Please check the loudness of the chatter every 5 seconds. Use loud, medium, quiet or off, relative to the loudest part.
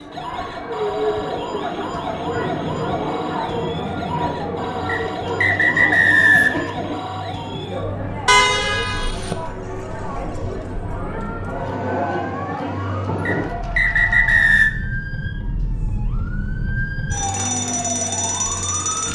loud, loud, loud, off.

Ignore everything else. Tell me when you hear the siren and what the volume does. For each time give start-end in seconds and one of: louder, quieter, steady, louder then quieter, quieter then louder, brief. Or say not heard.
0.0-19.0 quieter then louder.